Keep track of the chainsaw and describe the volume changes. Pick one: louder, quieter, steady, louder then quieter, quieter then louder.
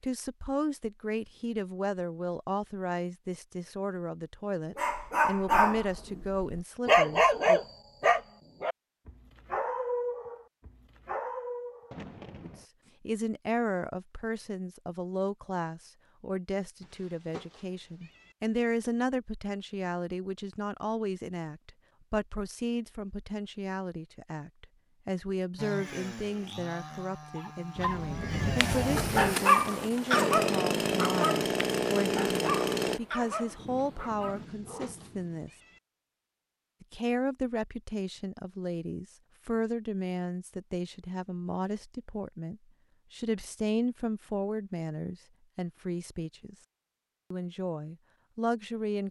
louder.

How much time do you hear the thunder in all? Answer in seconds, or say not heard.
4 s.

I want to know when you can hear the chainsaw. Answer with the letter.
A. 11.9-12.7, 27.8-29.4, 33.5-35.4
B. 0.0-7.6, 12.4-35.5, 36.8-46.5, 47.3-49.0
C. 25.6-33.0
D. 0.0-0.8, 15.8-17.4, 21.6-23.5
C.